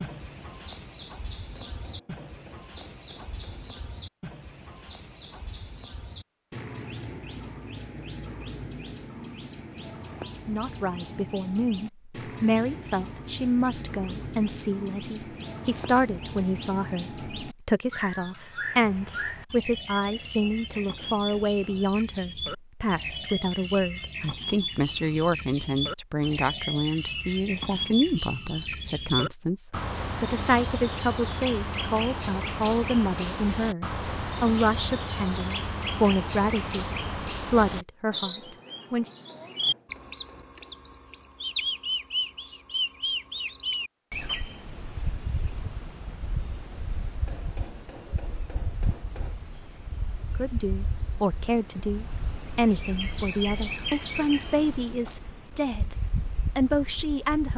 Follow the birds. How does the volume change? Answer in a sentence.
The volume of the birds goes up, then down.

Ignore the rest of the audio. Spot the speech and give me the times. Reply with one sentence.
The speech can be heard from 10.4 to 39.1 s, from 50.4 to 56.0 s and from 56.5 to 57.5 s.